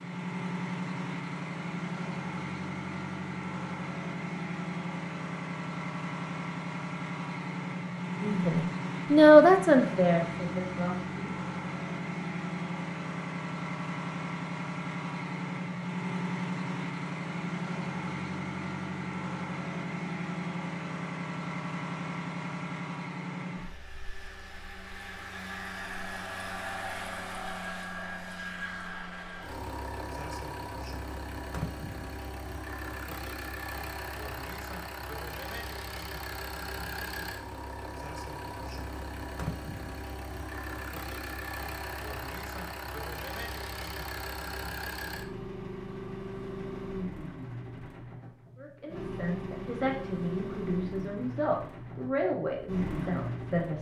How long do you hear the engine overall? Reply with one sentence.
You can hear the engine for 54 seconds altogether.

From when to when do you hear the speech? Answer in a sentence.
The speech can be heard from 8.2 to 11.3 s and from 48.5 to 53.7 s.